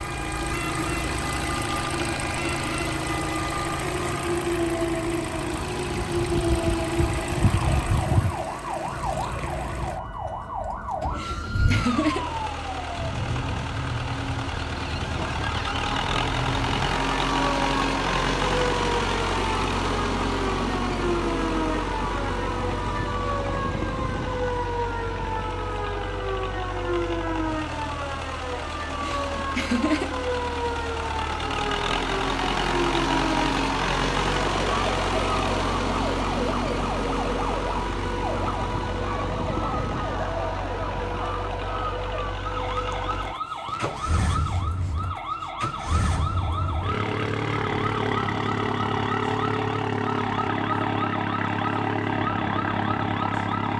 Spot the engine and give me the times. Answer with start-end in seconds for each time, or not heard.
0.0-53.7.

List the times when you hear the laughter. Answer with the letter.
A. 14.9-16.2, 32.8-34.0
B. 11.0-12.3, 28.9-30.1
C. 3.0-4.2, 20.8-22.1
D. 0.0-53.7
B.